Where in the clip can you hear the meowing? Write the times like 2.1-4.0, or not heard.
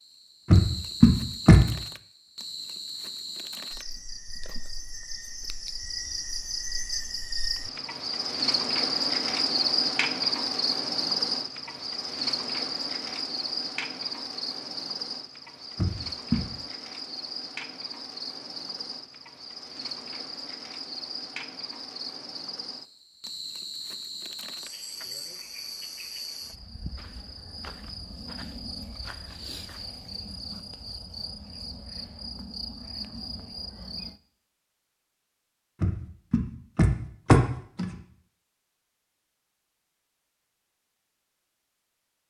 not heard.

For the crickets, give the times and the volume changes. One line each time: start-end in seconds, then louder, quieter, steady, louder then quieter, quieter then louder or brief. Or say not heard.
0.0-34.2 louder then quieter.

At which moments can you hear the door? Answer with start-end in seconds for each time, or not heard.
0.5-1.6, 15.8-16.4, 35.8-38.0.